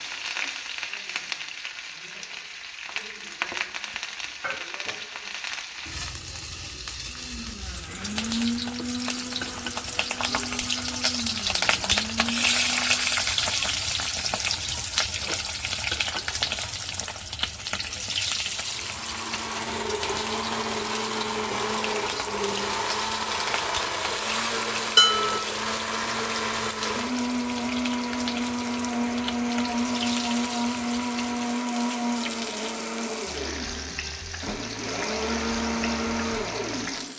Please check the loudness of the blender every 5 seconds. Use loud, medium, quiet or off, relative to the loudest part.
off, medium, medium, medium, loud, loud, loud, loud.